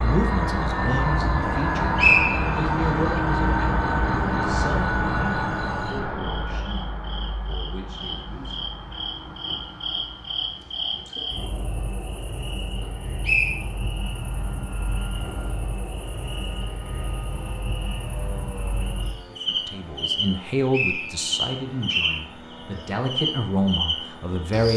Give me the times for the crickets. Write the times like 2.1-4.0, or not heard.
0.0-24.7.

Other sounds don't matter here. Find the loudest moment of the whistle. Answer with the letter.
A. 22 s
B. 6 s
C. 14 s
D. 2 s
D.